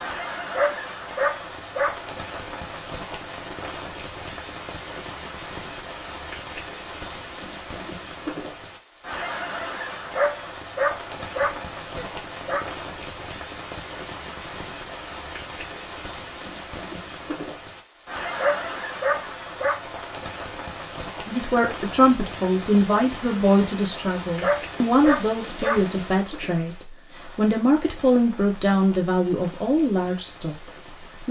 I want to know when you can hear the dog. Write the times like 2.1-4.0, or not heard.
0.6-1.9, 10.2-12.7, 18.4-19.8, 24.4-25.8.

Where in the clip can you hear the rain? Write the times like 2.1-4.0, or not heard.
0.0-31.2.